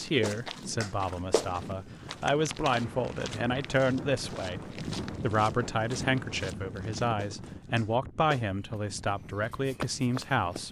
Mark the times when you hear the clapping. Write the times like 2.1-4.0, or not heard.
0.2-1.5, 7.2-8.4.